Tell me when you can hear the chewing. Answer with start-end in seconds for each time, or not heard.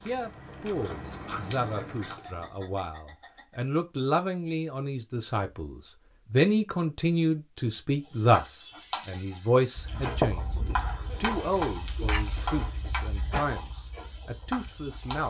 0.0-2.5, 9.8-15.2.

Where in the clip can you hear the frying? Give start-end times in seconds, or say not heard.
8.0-15.2.